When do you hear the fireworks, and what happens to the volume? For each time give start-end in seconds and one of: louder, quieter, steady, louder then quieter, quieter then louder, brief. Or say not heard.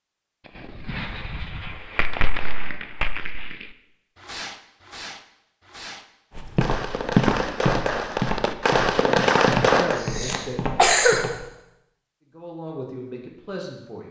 0.6-10.1 quieter then louder.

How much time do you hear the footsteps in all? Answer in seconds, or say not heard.
5 s.